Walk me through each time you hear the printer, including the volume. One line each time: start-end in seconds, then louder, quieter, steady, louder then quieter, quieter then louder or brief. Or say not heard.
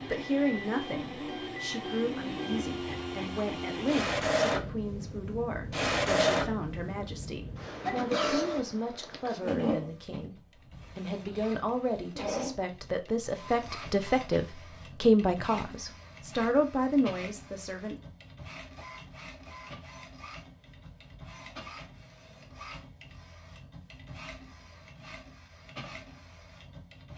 0.0-27.1 quieter.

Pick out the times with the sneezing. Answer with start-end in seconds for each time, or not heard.
7.8-8.4.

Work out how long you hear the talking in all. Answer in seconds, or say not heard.
17 s.